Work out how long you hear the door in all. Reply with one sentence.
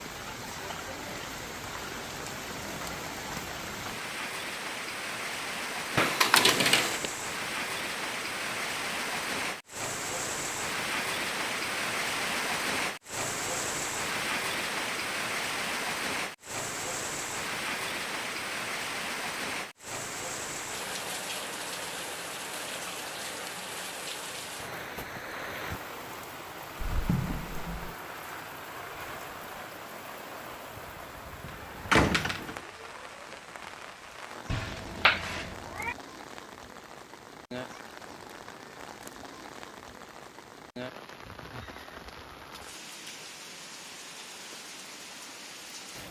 The door can be heard for 3 seconds in total.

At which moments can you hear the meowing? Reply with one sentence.
The meowing can be heard from 34.5 to 36.0 s.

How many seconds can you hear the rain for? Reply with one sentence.
The rain can be heard for 46 seconds in total.